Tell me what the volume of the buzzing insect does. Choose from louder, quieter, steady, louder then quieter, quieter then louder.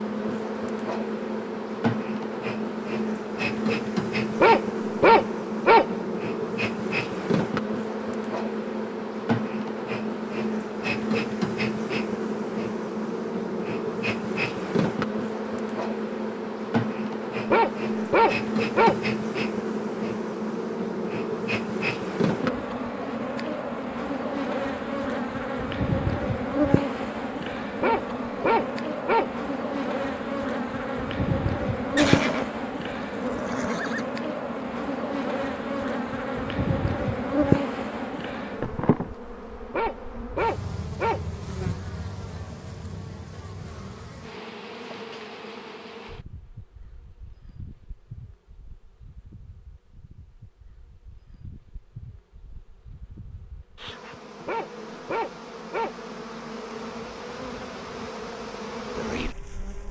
quieter.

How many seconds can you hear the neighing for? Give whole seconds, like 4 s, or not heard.
2 s.